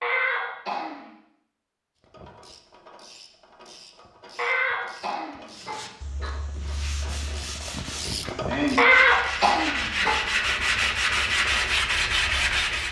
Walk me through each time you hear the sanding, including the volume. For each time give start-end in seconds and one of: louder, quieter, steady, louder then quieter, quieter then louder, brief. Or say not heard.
5.5-12.8 louder.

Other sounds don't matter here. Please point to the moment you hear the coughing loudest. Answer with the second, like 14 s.
9 s.